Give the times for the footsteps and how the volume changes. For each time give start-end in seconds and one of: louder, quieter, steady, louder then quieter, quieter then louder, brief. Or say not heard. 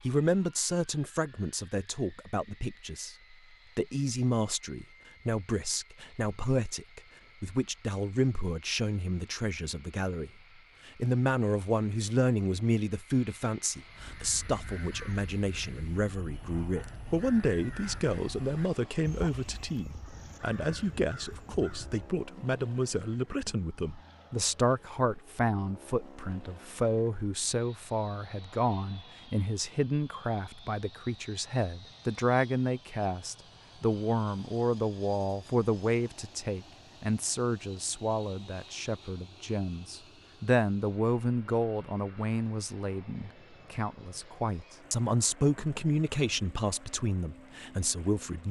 not heard.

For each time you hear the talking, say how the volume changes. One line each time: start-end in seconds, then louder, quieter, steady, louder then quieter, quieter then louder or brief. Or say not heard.
0.1-48.4 steady.